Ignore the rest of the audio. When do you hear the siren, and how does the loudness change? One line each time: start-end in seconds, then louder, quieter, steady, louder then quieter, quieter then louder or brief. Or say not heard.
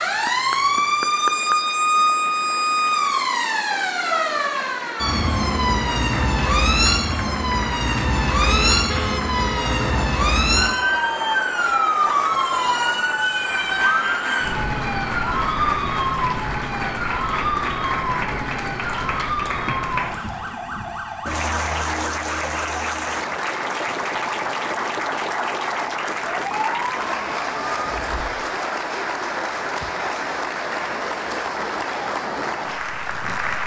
0.0-28.2 quieter.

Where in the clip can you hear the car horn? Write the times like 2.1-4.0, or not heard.
8.4-9.9.